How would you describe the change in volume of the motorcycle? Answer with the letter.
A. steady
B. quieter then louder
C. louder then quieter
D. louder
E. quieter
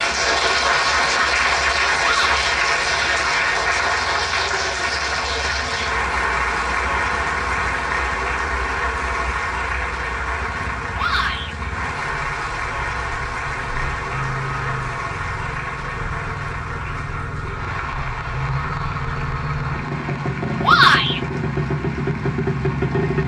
D.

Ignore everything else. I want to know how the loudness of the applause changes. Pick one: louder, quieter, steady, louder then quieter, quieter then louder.
quieter.